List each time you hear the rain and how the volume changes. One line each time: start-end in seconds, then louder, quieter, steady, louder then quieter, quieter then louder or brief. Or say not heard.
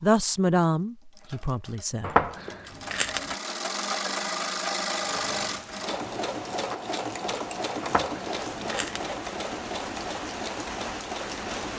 5.0-11.7 louder.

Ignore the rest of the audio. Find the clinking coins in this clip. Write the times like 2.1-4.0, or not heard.
2.0-3.4, 7.8-9.2.